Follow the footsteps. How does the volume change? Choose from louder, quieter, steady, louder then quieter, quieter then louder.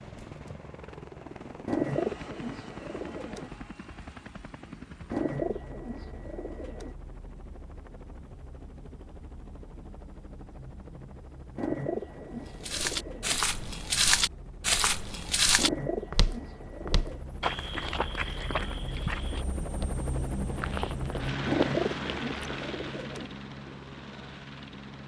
quieter.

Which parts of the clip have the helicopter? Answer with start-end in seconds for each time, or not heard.
0.0-25.0.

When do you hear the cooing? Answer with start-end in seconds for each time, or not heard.
1.6-3.5, 5.1-7.0, 11.6-13.4, 15.6-17.2, 21.4-23.3.